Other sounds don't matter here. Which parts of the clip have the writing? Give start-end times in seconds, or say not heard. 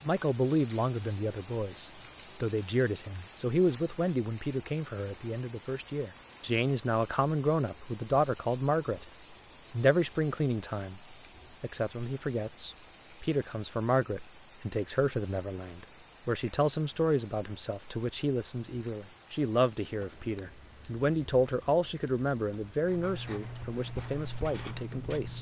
22.8-25.3.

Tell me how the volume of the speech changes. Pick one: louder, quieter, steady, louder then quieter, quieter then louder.
steady.